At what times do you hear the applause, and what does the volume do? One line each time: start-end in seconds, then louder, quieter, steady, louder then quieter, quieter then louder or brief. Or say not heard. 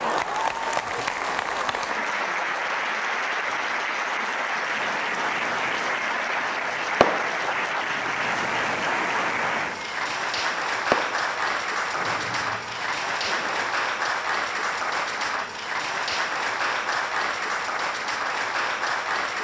0.0-19.3 steady.